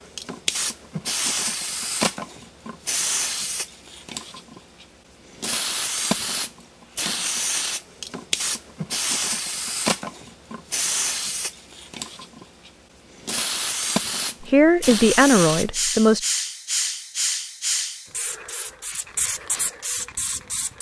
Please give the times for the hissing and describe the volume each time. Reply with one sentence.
You can hear the hissing from 0.0 to 20.7 s, at a steady volume.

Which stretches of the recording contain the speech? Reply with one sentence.
The speech can be heard from 14.4 to 16.2 s.